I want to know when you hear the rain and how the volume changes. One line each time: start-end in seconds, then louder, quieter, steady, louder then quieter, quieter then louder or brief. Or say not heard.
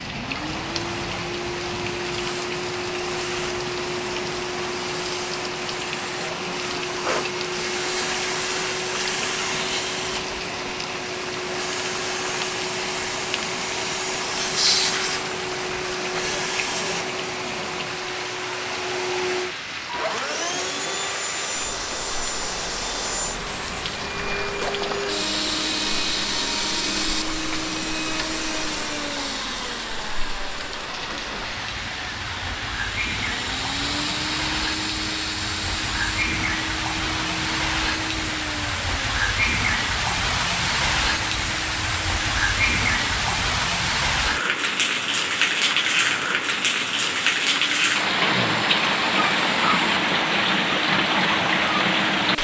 0.0-52.3 louder.